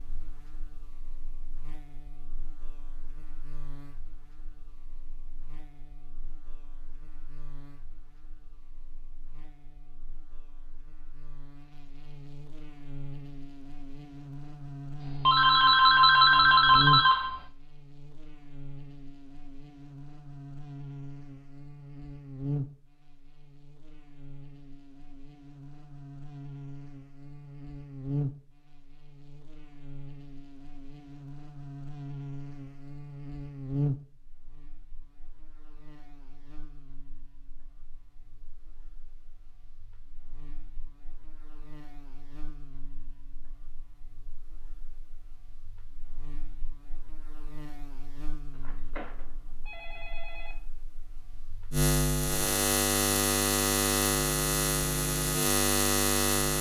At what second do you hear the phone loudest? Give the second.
16 s.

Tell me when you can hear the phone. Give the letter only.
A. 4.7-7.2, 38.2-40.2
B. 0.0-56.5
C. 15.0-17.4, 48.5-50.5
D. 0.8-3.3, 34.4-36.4
C.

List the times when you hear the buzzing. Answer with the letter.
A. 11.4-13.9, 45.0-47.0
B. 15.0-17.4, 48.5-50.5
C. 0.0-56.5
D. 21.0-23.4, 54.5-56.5
C.